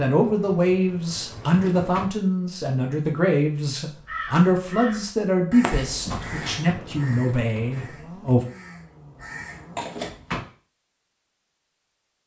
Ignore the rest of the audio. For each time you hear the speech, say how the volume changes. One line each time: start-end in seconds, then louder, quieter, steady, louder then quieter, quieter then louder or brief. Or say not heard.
0.0-8.4 steady.